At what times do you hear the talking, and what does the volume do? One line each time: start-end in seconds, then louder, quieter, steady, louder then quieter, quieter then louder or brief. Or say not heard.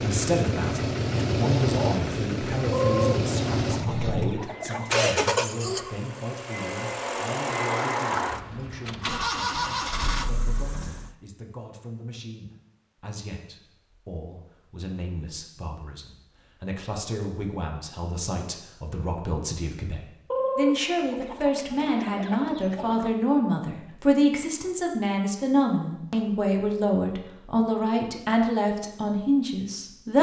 0.0-30.1 quieter then louder.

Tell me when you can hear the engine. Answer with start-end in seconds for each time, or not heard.
0.0-11.1.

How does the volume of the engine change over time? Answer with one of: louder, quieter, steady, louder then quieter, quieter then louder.
steady.